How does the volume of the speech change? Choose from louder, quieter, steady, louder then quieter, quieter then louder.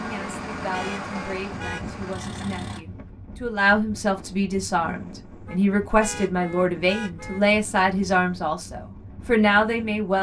louder.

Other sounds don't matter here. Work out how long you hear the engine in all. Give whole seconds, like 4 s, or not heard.
3 s.